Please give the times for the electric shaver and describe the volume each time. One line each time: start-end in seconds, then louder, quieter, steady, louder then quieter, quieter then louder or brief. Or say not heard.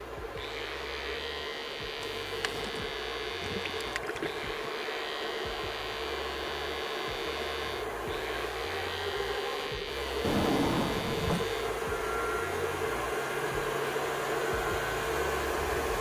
0.3-15.9 steady.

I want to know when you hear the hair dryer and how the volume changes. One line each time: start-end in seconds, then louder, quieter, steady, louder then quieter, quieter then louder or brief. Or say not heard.
0.0-15.9 louder.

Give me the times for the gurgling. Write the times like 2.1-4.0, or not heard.
2.2-4.7.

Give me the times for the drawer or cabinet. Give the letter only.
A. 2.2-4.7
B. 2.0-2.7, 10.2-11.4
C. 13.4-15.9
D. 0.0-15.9
B.